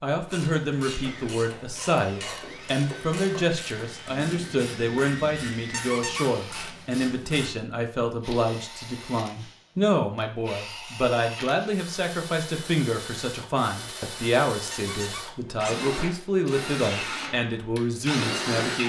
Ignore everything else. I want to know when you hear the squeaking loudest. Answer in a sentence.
The loudest moment of the squeaking is at 6 seconds.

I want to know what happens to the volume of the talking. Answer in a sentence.
The loudness of the talking stays about the same.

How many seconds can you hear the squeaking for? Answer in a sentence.
The squeaking can be heard for 2 seconds in total.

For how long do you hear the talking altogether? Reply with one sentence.
You can hear the talking for 19 seconds altogether.